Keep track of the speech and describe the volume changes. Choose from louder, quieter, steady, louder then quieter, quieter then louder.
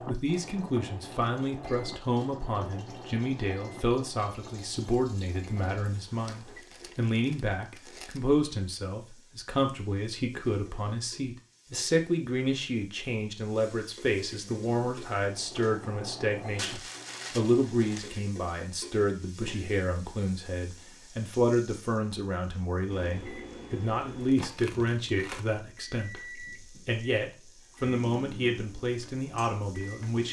steady.